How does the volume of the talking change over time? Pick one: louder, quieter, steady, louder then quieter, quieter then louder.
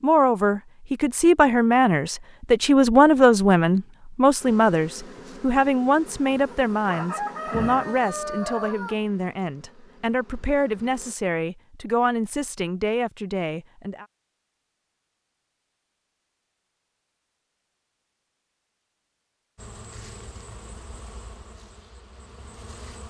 quieter.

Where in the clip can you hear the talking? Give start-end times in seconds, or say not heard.
0.0-14.1.